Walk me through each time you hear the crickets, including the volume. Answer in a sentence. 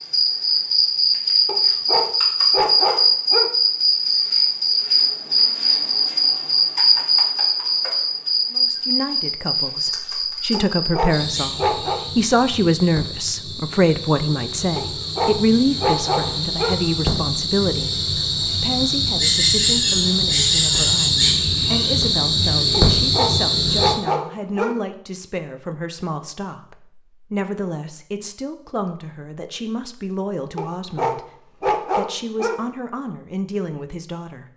The crickets can be heard from 0.0 to 23.9 s, getting quieter then louder.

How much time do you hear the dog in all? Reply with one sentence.
The dog can be heard for 10 seconds in total.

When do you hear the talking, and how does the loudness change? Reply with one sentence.
The talking can be heard from 8.5 to 34.5 s, getting quieter.